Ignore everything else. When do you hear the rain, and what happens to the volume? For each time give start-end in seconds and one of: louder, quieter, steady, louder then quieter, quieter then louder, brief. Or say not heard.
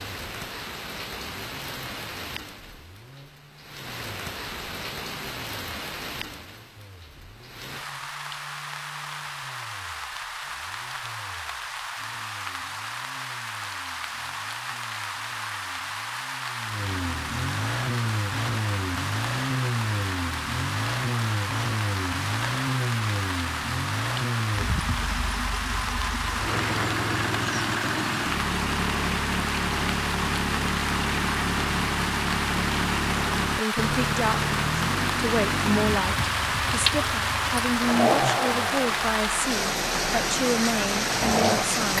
0.0-41.9 louder.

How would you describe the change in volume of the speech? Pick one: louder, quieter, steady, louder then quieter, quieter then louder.
steady.